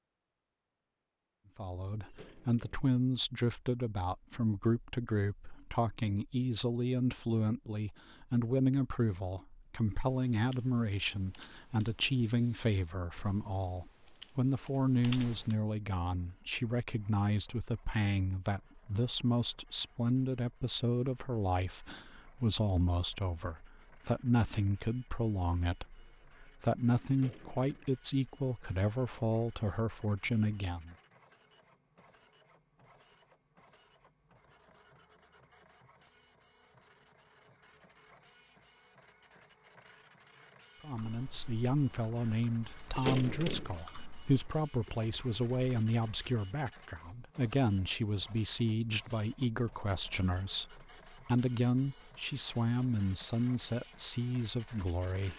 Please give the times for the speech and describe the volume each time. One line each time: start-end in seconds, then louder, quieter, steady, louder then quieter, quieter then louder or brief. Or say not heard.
1.6-30.9 steady
40.8-55.3 steady.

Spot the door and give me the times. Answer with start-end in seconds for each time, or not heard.
2.0-2.9, 27.1-27.9, 42.9-43.8.